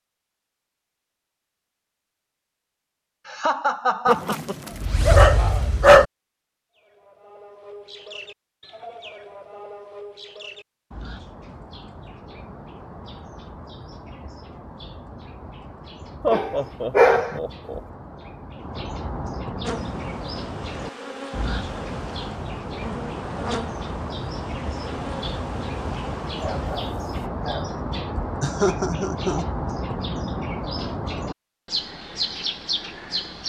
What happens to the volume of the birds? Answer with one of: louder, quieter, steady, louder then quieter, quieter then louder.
louder.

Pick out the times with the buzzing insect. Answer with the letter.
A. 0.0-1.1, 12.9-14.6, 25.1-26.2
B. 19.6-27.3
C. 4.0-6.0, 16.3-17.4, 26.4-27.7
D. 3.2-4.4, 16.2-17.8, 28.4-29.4
B.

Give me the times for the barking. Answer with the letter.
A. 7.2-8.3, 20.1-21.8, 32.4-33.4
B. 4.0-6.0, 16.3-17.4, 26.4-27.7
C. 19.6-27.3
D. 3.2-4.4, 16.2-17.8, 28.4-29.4
B.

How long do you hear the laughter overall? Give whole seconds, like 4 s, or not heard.
4 s.